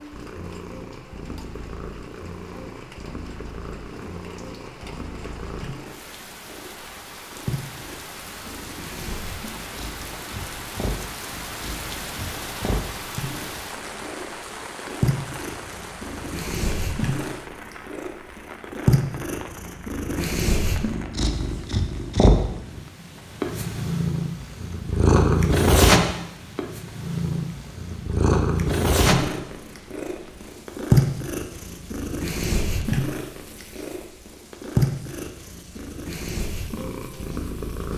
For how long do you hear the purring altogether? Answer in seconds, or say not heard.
38 s.